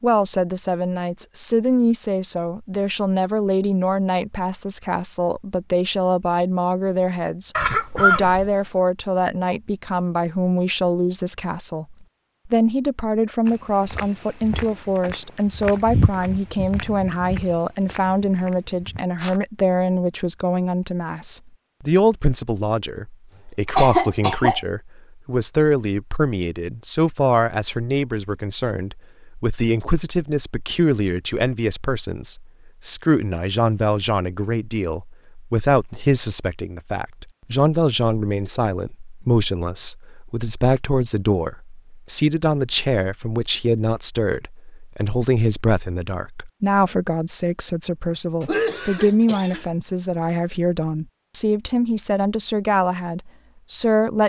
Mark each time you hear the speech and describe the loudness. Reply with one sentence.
The speech can be heard from 0.0 to 54.2 s, at a steady volume.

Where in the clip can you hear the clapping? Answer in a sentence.
You can't hear the clapping here.